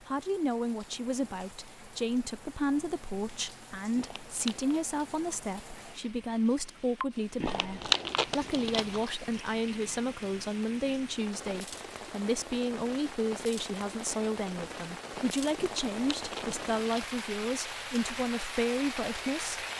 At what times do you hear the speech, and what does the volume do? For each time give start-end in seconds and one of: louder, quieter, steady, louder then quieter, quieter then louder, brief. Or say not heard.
0.1-19.6 steady.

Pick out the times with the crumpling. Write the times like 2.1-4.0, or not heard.
4.0-4.8, 7.4-9.1, 15.6-17.6.